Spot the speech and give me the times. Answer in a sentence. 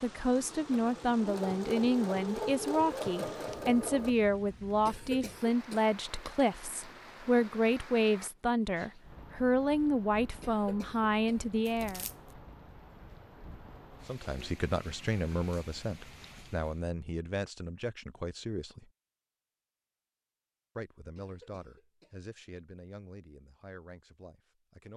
The speech can be heard from 0.0 to 12.1 s, from 14.1 to 18.9 s and from 20.8 to 24.9 s.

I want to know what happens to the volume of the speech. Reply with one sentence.
The loudness of the speech goes down.